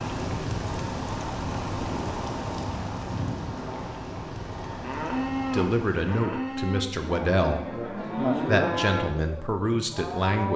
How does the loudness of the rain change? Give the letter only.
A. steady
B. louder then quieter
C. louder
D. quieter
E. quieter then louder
D.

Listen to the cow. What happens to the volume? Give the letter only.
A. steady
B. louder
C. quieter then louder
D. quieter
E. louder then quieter
E.